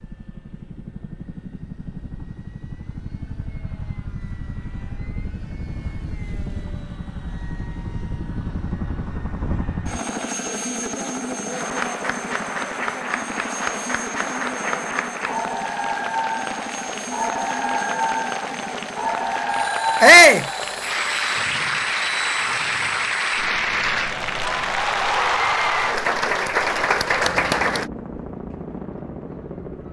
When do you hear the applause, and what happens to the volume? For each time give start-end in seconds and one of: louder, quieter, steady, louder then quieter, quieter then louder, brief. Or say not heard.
11.5-27.9 louder.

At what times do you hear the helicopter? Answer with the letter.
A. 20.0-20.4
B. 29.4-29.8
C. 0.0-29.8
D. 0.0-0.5
C.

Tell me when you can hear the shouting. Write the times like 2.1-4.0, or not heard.
20.0-20.4.